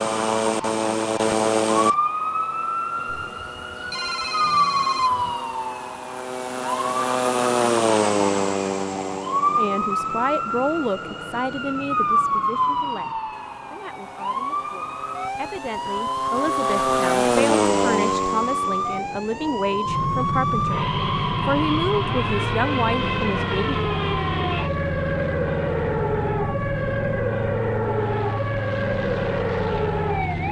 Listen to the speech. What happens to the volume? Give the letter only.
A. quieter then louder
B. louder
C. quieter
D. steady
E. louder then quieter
A.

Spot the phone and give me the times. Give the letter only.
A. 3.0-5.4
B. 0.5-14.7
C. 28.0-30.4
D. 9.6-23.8
A.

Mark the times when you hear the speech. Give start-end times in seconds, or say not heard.
9.6-23.8.